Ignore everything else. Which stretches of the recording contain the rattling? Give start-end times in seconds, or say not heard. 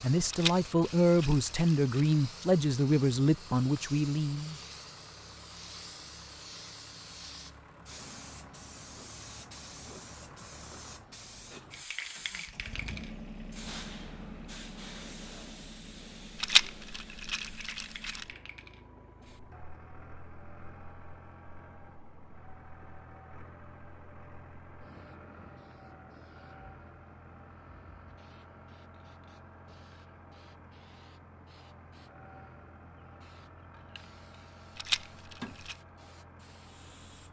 0.3-2.1, 16.4-18.2, 34.8-35.8.